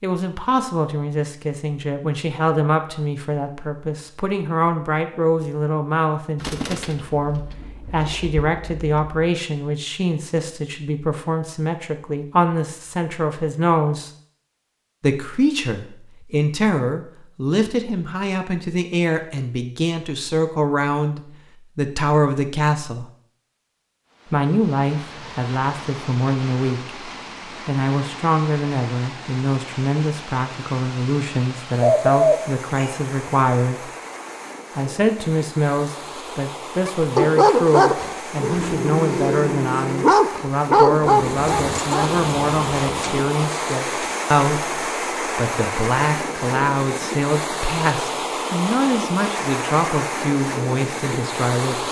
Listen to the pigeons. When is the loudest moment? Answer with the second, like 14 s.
32 s.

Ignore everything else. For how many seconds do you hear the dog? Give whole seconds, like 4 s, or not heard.
5 s.